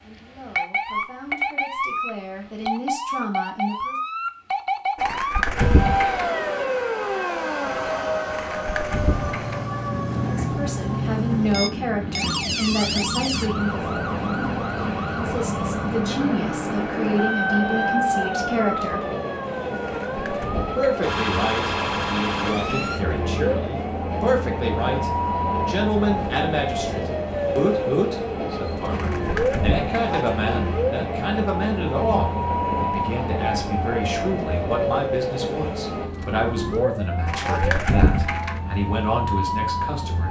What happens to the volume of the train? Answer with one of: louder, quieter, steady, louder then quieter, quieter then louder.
steady.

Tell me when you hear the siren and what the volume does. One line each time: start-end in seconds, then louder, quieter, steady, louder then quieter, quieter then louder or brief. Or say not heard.
0.0-40.2 steady.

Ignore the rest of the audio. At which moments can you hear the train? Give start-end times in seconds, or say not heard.
5.5-36.1.